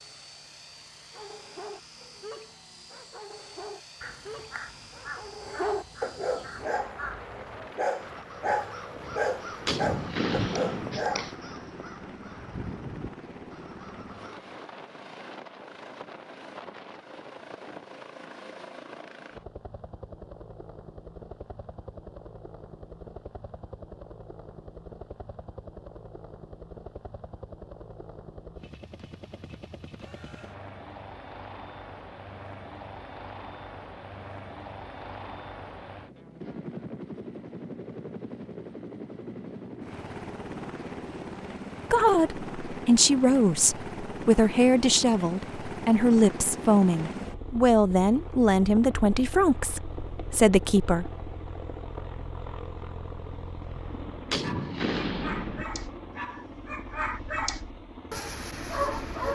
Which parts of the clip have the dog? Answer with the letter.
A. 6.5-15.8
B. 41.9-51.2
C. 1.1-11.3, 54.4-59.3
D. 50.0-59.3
C.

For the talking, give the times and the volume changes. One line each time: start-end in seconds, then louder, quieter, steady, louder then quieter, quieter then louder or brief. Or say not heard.
41.9-51.2 steady.